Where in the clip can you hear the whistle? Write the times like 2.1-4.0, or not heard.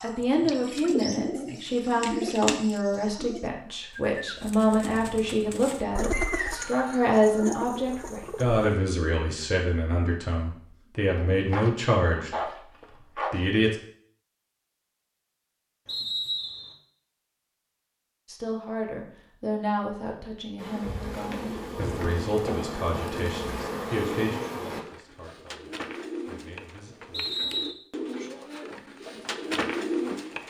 6.1-7.1, 15.8-16.8, 27.1-27.8.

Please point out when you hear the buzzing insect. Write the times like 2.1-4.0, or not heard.
20.6-24.8.